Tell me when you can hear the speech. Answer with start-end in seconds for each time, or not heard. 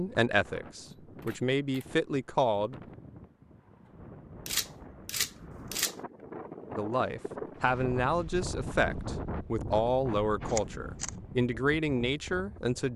0.0-2.8, 6.8-12.9.